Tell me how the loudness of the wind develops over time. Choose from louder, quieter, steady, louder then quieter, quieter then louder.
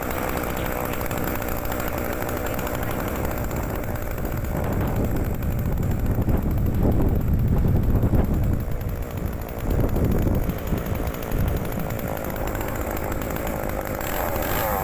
louder then quieter.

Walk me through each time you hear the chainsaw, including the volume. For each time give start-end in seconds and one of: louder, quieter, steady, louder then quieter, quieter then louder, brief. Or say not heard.
0.0-14.7 quieter then louder.